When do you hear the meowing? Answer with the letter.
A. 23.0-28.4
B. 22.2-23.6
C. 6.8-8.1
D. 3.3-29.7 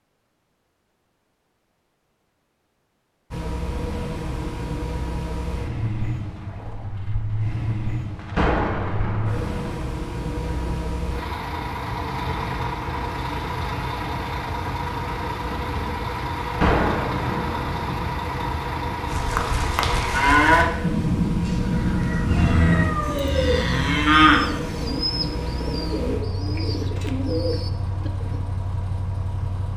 B.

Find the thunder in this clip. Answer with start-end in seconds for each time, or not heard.
8.2-10.7, 16.4-19.1.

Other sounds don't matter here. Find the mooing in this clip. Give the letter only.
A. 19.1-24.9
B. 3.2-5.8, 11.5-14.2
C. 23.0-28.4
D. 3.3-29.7
A.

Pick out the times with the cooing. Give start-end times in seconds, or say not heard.
23.0-28.4.